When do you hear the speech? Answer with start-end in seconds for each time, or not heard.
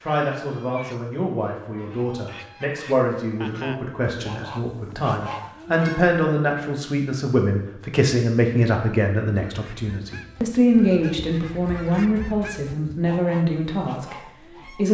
0.0-14.8.